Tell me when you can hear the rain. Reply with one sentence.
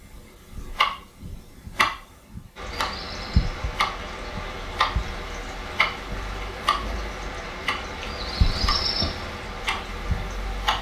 You can hear the rain from 2.5 to 10.7 s.